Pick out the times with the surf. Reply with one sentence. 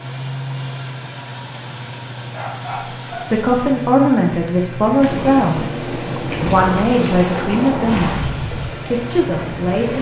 You can hear the surf from 5.0 to 9.9 s.